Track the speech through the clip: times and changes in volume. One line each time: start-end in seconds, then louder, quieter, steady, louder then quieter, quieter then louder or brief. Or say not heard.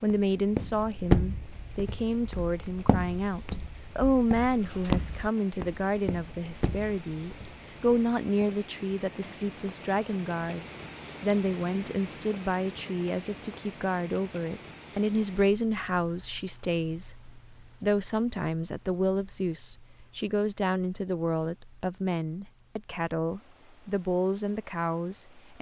0.0-25.5 steady.